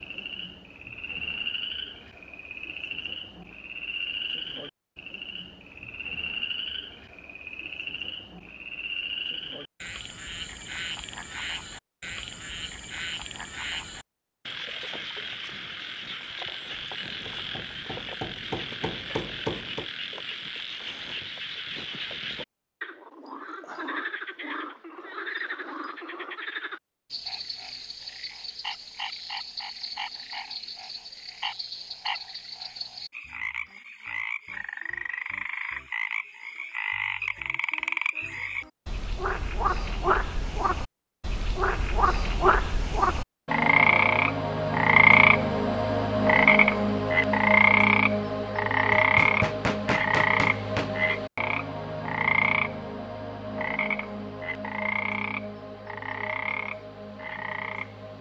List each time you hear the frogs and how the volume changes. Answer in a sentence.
The frogs can be heard from 0.0 to 58.1 s, getting louder.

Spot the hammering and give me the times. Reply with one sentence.
The hammering can be heard from 17.2 to 19.9 s and from 48.9 to 50.9 s.